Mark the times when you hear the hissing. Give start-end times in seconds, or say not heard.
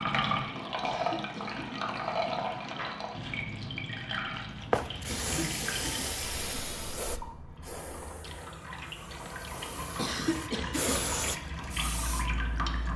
4.5-12.9.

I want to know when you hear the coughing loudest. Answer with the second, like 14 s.
10 s.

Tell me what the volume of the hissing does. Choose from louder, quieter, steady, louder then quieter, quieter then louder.
quieter then louder.